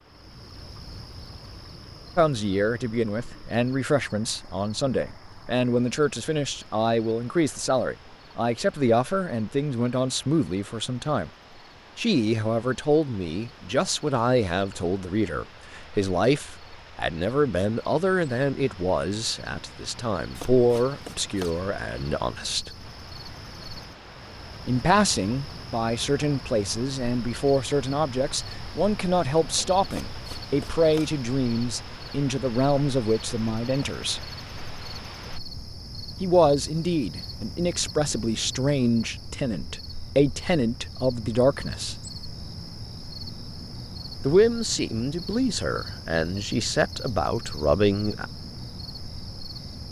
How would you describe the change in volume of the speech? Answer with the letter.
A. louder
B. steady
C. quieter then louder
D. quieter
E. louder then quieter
B.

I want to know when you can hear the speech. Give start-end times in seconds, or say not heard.
2.1-11.3, 11.9-22.7, 24.6-34.2, 36.2-42.0, 44.2-48.2.